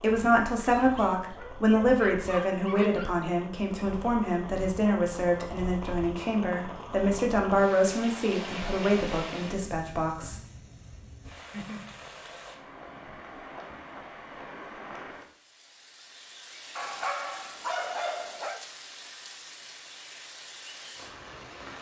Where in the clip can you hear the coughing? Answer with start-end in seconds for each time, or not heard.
not heard.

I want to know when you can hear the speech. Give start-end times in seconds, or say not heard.
0.0-10.4.